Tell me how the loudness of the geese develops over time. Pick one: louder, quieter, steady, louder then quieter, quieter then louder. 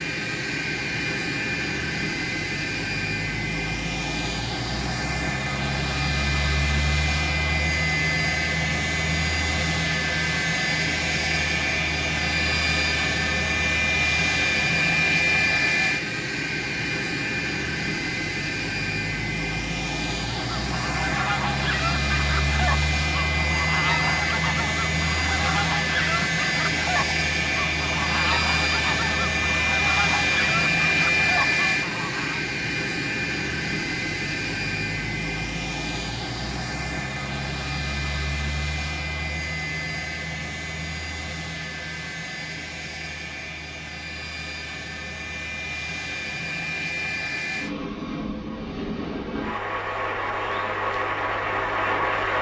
steady.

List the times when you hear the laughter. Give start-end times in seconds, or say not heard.
not heard.